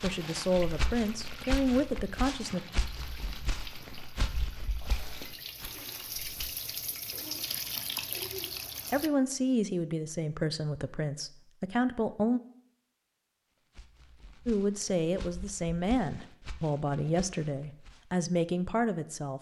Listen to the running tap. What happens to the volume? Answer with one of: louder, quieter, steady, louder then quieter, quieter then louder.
louder.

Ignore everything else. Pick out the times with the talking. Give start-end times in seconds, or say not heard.
0.0-2.6, 8.9-12.4, 14.4-19.3.